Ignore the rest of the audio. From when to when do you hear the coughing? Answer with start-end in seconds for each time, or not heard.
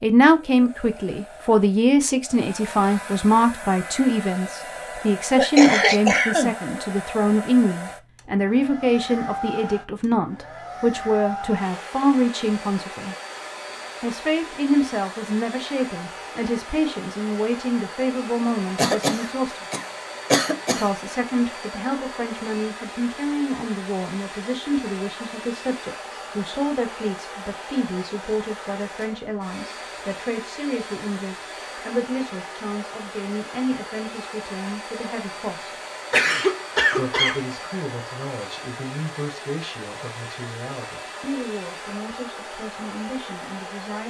5.3-6.5, 18.8-20.9, 36.1-37.5.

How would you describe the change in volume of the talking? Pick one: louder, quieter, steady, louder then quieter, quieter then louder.
quieter.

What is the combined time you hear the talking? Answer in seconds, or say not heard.
41 s.